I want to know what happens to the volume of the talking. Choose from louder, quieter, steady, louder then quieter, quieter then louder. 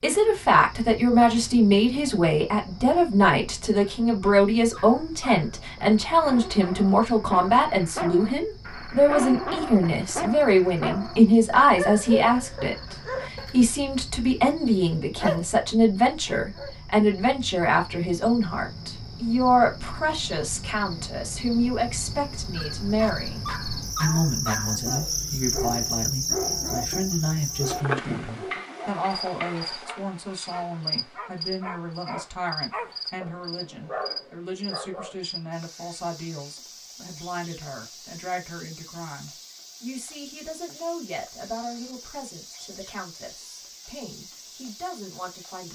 quieter.